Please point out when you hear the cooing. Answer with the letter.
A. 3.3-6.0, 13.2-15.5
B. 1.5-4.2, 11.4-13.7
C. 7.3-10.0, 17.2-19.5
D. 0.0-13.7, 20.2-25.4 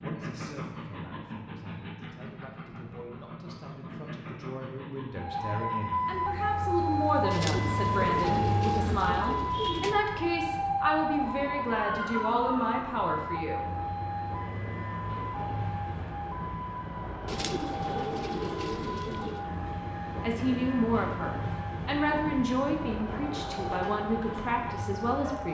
C.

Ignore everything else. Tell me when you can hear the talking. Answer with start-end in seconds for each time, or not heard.
0.0-13.7, 20.2-25.4.